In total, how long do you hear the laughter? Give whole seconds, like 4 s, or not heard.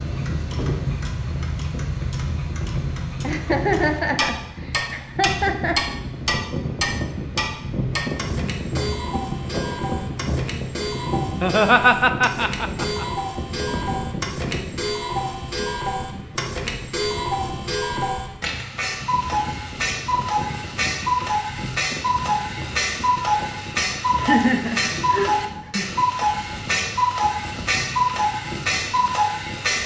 6 s.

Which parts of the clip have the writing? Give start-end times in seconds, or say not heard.
not heard.